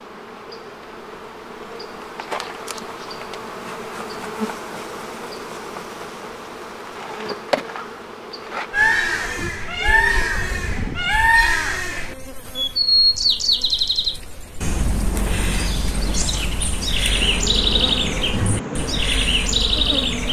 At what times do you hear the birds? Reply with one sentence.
You can hear the birds from 8.7 to 20.2 s.